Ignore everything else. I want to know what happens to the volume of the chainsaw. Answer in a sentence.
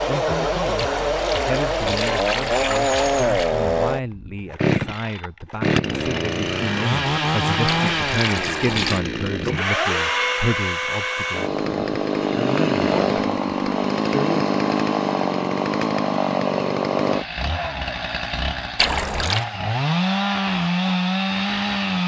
The loudness of the chainsaw stays about the same.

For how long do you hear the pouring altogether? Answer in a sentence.
You can hear the pouring for 5 seconds altogether.